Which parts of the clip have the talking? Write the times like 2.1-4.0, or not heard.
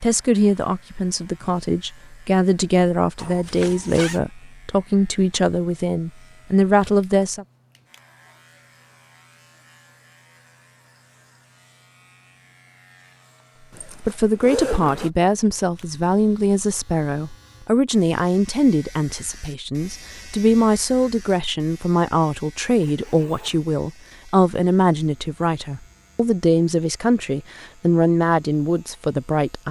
0.0-7.5, 14.0-29.6.